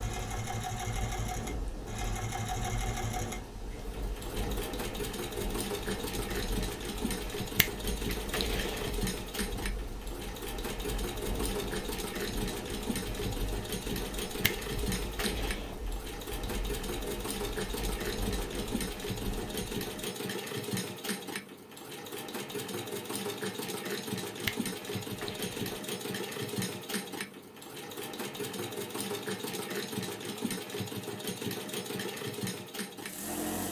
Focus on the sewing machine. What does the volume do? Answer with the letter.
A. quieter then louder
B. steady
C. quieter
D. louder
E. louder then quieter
B.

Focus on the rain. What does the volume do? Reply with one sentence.
The loudness of the rain stays about the same.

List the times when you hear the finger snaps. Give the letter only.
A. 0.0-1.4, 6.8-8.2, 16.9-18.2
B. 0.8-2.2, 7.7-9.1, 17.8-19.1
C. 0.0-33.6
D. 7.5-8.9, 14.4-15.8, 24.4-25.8
D.